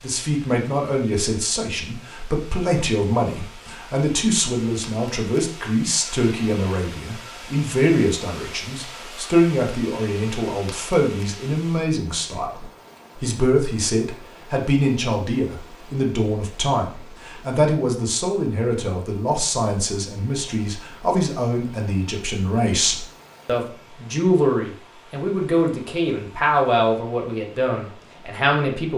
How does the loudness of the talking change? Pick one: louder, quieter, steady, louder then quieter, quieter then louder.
steady.